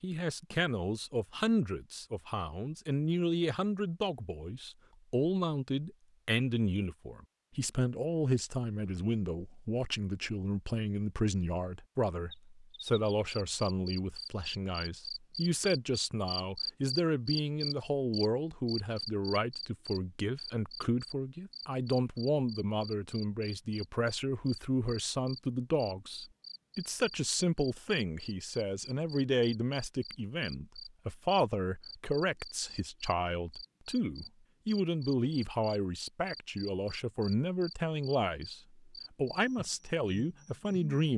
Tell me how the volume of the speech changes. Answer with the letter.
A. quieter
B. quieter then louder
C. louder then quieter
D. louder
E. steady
E.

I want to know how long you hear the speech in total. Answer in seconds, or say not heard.
41 s.